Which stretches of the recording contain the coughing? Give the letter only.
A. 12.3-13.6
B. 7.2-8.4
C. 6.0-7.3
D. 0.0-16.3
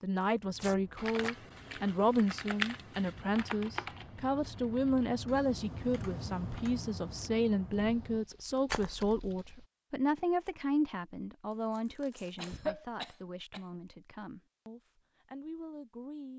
A.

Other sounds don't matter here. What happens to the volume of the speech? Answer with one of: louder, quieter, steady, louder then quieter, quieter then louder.
quieter.